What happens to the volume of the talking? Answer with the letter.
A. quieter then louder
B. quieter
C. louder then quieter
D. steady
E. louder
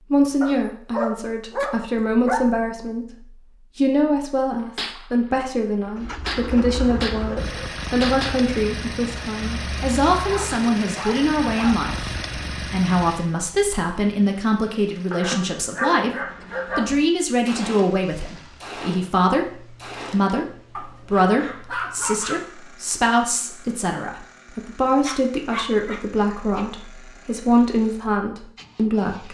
D.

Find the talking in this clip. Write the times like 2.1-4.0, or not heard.
0.1-29.2.